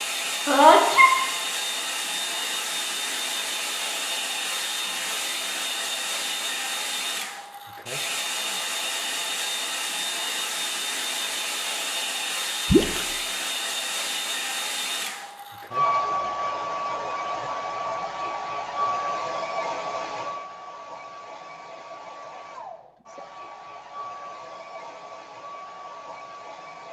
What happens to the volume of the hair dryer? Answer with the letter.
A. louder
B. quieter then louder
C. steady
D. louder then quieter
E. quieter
E.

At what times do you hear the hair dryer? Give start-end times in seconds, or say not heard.
0.0-26.8.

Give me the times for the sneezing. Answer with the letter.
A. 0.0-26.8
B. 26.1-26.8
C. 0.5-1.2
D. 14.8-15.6
C.